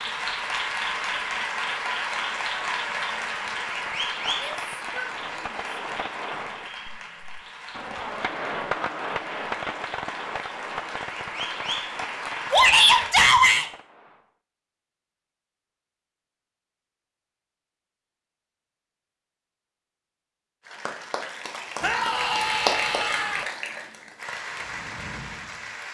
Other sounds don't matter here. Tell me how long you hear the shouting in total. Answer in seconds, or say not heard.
4 s.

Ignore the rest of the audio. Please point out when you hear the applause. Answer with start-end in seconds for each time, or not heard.
0.0-13.2, 20.6-25.8.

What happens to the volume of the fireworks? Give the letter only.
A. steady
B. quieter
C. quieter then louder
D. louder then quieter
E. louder
D.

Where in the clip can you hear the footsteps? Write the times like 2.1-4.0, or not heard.
not heard.